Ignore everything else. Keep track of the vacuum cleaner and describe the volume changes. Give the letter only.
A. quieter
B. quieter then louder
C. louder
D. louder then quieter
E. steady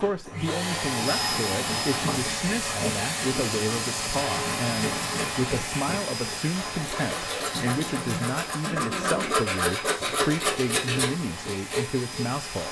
A.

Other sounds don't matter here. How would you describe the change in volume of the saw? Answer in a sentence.
The loudness of the saw goes up.